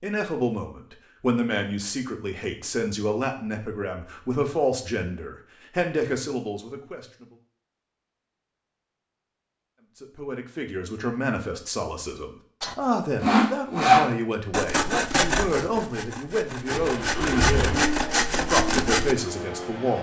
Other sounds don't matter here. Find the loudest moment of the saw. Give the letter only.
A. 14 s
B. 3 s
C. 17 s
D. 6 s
A.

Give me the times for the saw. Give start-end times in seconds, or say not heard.
12.6-19.1.